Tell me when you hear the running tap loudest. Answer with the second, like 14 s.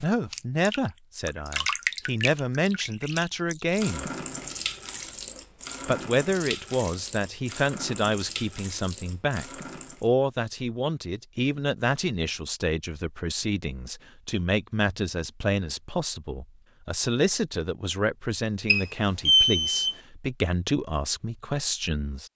2 s.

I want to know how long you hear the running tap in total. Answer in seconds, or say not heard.
10 s.